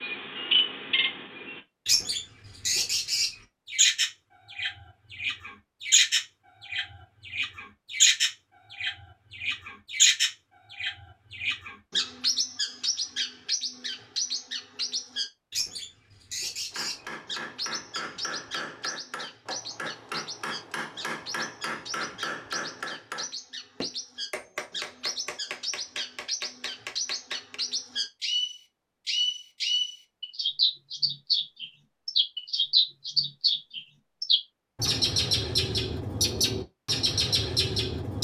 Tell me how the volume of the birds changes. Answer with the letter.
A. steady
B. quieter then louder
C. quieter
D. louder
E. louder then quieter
B.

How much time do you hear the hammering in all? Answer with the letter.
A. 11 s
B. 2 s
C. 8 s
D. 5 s
A.